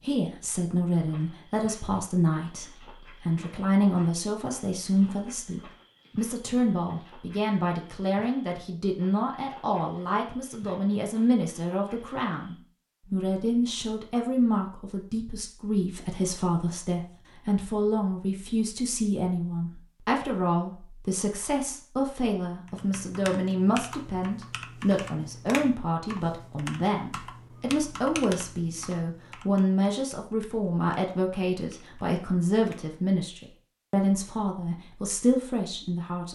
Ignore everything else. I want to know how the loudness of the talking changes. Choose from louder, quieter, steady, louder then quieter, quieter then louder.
steady.